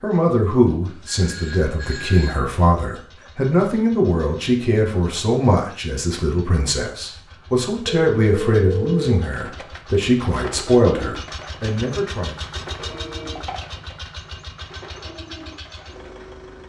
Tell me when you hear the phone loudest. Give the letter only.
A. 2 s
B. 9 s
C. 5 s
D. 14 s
B.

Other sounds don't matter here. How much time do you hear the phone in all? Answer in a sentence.
You can hear the phone for 4 seconds altogether.